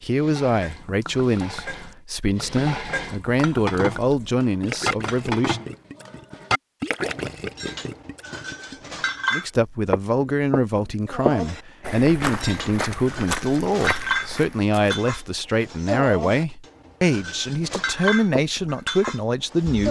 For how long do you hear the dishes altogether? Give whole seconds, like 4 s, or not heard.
18 s.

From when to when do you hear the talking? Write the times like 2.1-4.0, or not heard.
0.0-5.7, 9.3-19.8.